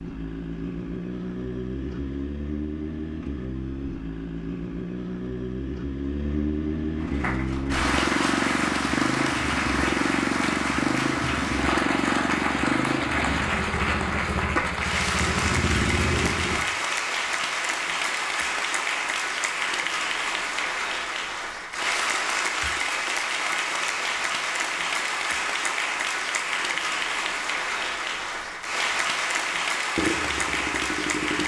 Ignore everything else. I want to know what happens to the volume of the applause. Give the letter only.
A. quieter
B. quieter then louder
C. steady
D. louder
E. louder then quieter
C.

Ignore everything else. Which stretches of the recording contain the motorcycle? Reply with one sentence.
The motorcycle can be heard from 0.0 to 16.6 s and from 29.9 to 31.4 s.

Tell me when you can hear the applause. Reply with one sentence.
The applause can be heard from 7.0 to 31.4 s.